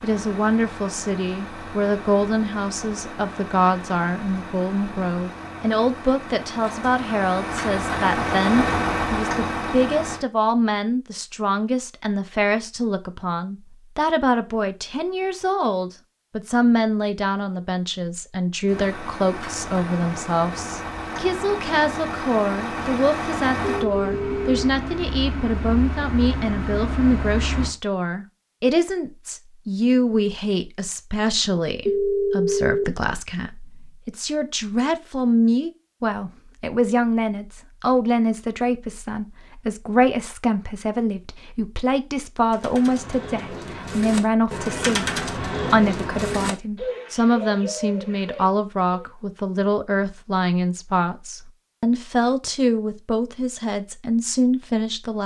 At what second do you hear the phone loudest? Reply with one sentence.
The volume of the phone peaks at 32 seconds.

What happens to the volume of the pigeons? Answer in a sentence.
The loudness of the pigeons goes up, then down.